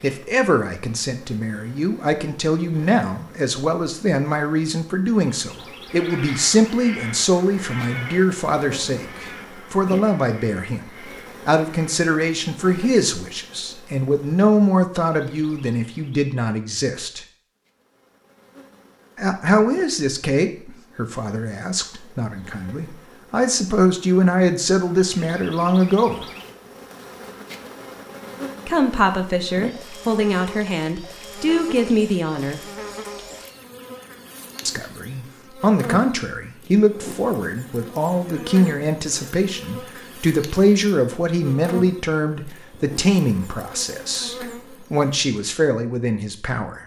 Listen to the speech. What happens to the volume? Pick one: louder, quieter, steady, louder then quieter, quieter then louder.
steady.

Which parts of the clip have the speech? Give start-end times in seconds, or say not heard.
0.0-17.2, 19.1-26.2, 28.6-32.6, 34.6-46.8.